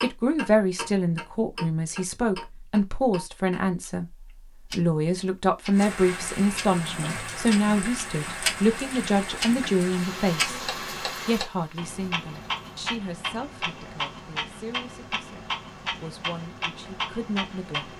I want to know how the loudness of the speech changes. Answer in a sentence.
The volume of the speech goes down.